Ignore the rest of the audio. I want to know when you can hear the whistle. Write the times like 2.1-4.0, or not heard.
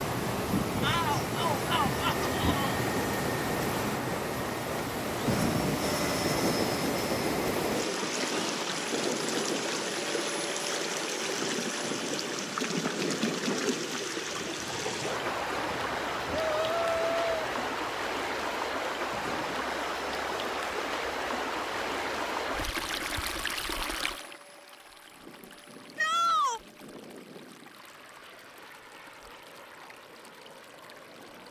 not heard.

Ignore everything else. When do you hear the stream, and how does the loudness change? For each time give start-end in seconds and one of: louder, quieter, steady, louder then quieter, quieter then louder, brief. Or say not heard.
0.0-31.4 quieter.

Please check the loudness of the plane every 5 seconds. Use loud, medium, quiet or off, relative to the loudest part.
loud, loud, medium, quiet, quiet, quiet, quiet.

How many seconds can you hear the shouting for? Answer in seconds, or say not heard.
4 s.